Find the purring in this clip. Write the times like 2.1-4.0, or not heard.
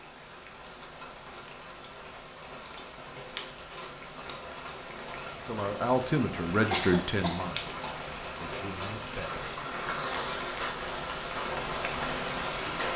not heard.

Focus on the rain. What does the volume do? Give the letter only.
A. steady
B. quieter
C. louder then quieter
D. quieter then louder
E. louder
E.